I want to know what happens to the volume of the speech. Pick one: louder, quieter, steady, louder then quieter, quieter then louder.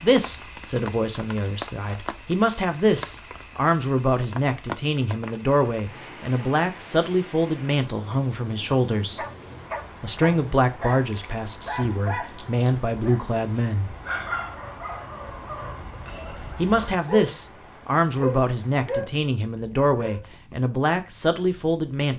steady.